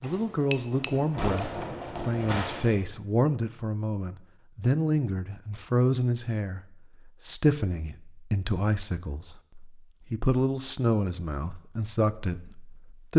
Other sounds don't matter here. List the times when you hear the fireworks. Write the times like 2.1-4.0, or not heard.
0.0-2.8.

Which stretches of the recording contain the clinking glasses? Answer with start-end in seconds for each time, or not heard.
0.0-1.4.